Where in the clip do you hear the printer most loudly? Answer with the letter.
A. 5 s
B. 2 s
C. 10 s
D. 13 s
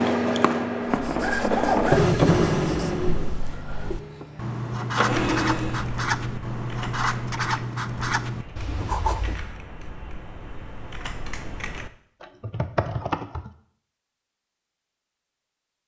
B.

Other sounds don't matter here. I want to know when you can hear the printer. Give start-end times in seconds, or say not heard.
0.0-5.9.